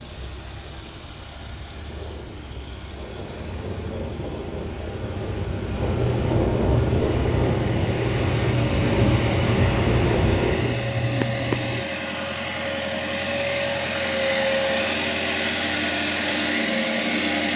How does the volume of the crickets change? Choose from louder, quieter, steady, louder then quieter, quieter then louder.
steady.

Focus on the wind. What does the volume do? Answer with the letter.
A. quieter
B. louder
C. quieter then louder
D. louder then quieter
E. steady
B.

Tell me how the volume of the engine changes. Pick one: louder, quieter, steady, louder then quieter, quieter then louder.
louder.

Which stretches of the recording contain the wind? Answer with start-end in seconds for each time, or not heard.
0.0-10.7.